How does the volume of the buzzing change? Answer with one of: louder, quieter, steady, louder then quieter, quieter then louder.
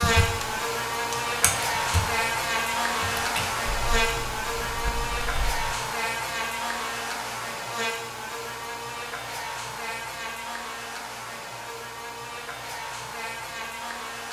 quieter.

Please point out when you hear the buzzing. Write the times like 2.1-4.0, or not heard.
0.0-14.2.